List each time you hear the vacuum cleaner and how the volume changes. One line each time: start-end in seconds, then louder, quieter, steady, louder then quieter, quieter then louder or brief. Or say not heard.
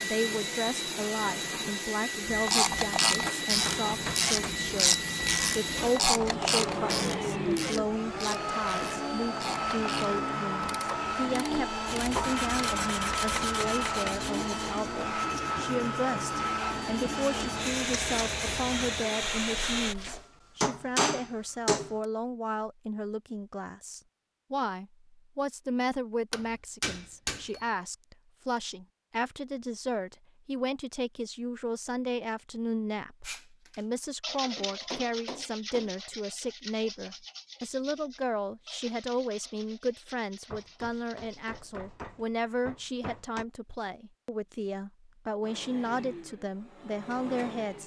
0.0-19.9 steady
45.4-47.8 brief.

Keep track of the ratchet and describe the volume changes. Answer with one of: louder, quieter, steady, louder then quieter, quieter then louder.
quieter.